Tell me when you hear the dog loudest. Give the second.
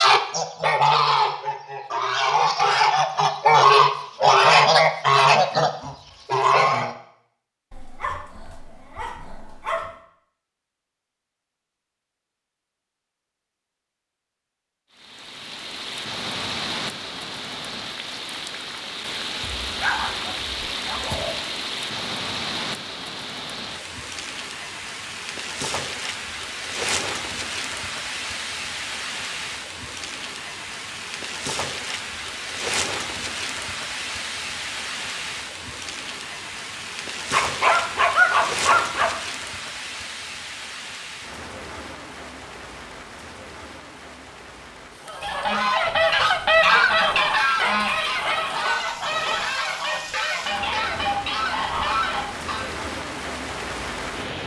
38 s.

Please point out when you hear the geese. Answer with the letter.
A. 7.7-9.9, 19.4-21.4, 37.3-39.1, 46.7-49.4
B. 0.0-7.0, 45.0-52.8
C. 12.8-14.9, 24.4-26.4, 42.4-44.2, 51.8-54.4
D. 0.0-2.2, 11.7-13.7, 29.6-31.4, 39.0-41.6
B.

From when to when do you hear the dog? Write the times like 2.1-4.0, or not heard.
7.7-9.9, 19.4-21.4, 37.3-39.1, 46.7-49.4.